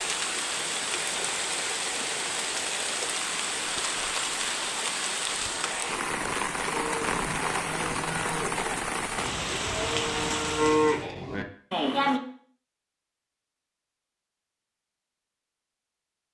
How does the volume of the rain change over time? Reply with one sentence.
The volume of the rain stays about the same.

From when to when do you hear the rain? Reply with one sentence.
You can hear the rain from 0.0 to 11.1 s.